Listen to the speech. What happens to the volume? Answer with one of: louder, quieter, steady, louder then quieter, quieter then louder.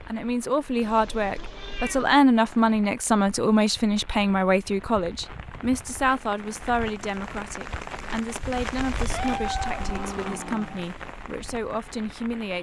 quieter.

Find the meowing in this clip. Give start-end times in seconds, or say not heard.
0.8-2.2, 9.1-10.8.